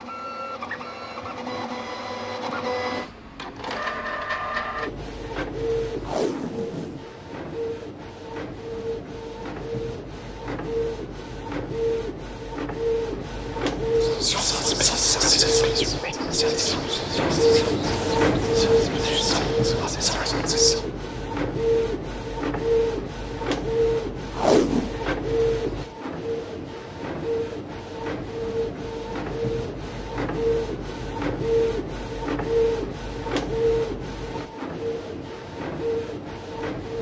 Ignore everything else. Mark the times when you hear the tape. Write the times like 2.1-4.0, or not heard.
6.0-7.0, 24.4-24.9.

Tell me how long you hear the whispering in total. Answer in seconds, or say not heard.
7 s.